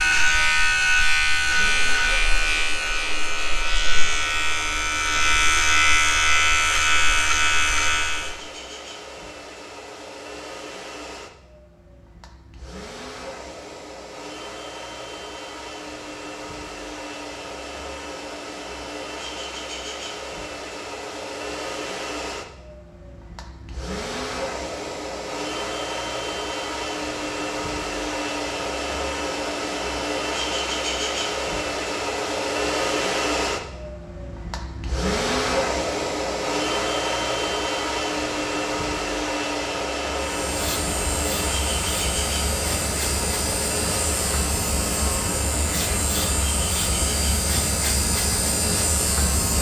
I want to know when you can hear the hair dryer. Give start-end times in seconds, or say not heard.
0.0-49.5.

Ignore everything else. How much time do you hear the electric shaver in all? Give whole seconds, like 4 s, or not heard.
18 s.